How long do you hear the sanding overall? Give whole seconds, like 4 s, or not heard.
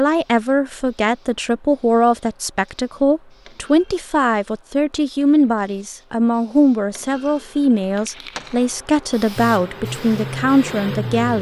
not heard.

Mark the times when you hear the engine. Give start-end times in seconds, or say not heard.
9.3-11.3.